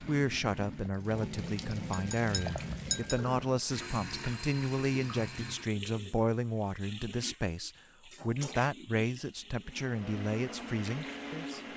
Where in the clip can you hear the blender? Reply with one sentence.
The blender can be heard from 9.7 to 11.7 s.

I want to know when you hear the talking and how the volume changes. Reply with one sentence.
The talking can be heard from 0.0 to 11.6 s, at a steady volume.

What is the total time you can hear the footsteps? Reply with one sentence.
You can't hear the footsteps here.